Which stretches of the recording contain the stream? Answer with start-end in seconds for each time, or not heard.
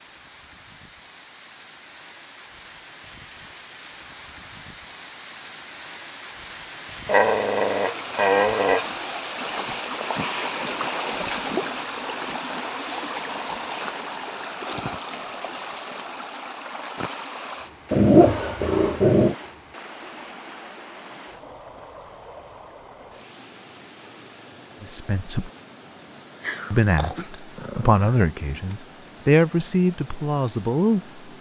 0.0-31.3.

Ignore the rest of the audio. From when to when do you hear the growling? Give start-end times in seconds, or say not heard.
7.0-8.9, 17.9-19.4, 26.4-28.1.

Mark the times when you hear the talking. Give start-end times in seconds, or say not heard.
24.8-25.5, 26.7-31.0.